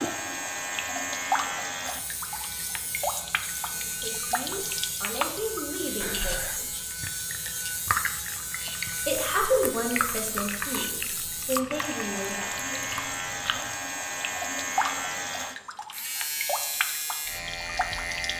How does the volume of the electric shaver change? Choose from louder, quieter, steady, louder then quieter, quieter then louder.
steady.